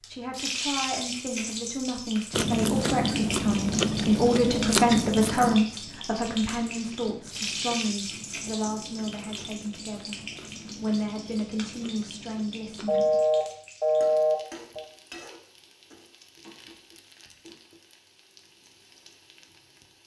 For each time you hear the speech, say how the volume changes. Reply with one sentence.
You can hear the speech from 0.0 to 13.1 s, getting louder then quieter.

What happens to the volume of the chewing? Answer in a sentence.
The loudness of the chewing goes down.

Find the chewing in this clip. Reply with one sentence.
You can hear the chewing from 2.3 to 13.2 s.